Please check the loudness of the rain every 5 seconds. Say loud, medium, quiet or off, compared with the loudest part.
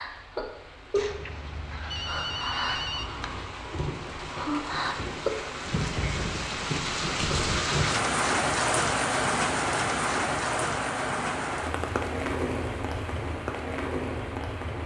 medium, loud, loud.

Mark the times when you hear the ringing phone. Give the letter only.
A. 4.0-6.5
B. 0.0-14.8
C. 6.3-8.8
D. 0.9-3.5
D.